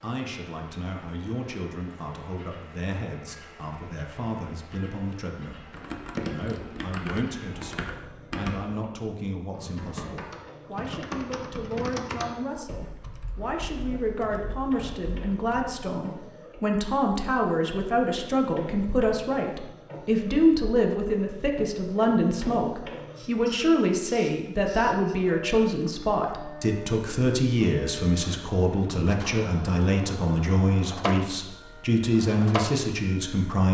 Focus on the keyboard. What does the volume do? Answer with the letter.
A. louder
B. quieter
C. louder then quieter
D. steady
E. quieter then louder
B.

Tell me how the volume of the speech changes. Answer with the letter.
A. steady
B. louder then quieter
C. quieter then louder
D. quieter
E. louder
E.